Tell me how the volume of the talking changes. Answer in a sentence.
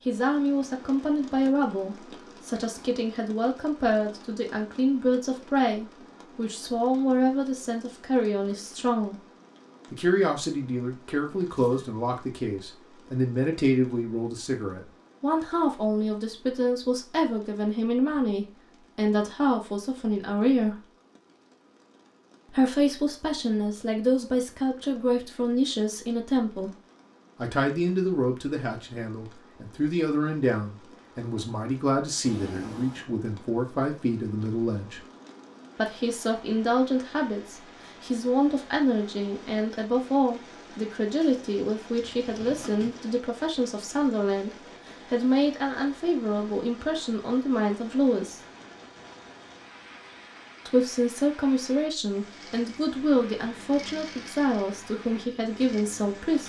The volume of the talking stays about the same.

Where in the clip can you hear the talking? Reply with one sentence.
You can hear the talking from 0.1 to 9.2 s, from 9.9 to 20.9 s, from 22.5 to 26.8 s, from 27.4 to 35.0 s, from 35.8 to 48.4 s and from 50.6 to 56.4 s.